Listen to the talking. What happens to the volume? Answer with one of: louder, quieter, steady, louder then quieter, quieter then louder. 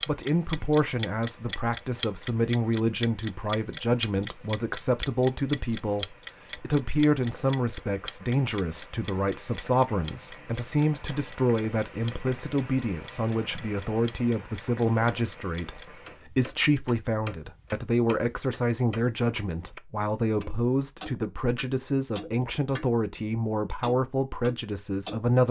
steady.